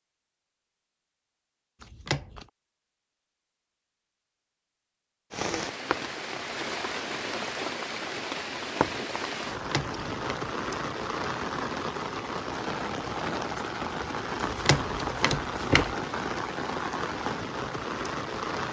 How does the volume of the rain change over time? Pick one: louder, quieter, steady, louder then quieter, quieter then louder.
steady.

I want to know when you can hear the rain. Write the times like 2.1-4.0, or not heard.
5.3-18.6.